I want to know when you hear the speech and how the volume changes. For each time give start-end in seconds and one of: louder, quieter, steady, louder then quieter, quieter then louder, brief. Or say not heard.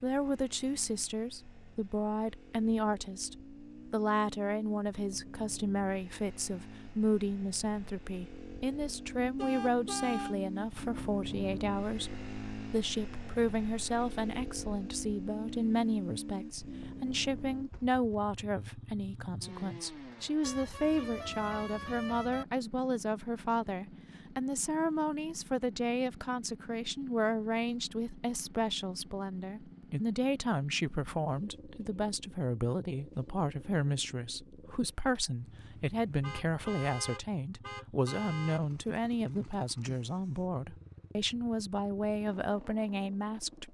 0.0-43.7 steady.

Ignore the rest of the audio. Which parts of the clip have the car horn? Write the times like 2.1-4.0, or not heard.
9.3-10.3, 20.4-22.4, 36.2-38.6.